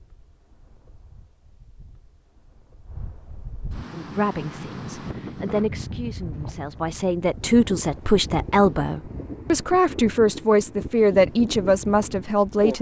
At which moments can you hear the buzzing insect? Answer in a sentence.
The buzzing insect can't be heard in this clip.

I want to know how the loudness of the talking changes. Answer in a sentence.
The volume of the talking goes up.